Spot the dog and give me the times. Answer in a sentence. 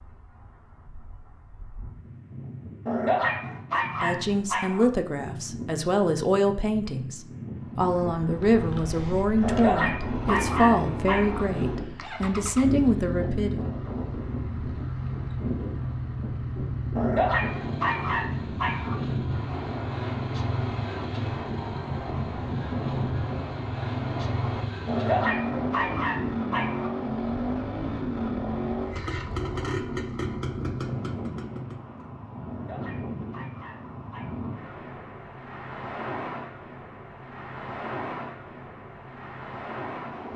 You can hear the dog from 2.9 to 4.8 s, from 9.4 to 11.4 s, from 16.9 to 18.9 s, from 24.9 to 26.9 s and from 32.5 to 34.5 s.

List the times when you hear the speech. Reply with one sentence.
You can hear the speech from 4.0 to 13.7 s.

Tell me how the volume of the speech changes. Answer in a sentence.
The volume of the speech stays about the same.